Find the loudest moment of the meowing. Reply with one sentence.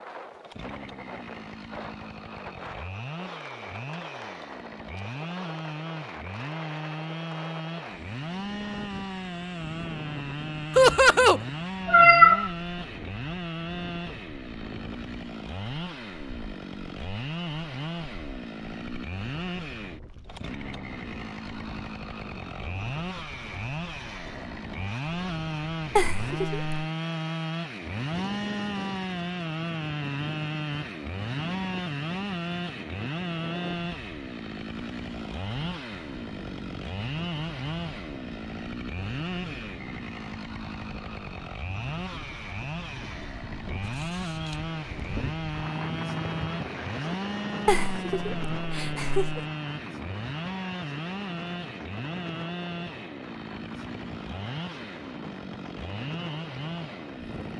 The volume of the meowing peaks at 12 seconds.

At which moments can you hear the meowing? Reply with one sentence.
You can hear the meowing from 11.8 to 12.5 s and from 43.8 to 45.0 s.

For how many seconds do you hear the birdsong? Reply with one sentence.
You can't hear the birdsong here.